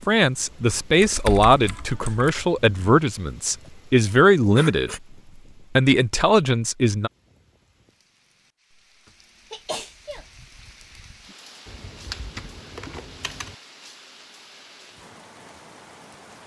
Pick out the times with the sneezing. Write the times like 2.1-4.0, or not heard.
3.6-5.0, 9.1-10.2.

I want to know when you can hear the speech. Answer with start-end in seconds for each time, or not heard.
0.0-5.0, 5.8-7.1.